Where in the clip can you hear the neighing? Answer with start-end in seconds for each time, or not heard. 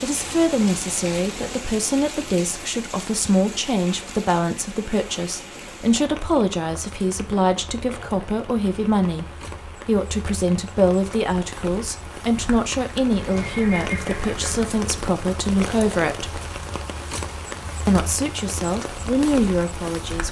13.2-14.9.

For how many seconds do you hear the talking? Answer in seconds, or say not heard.
18 s.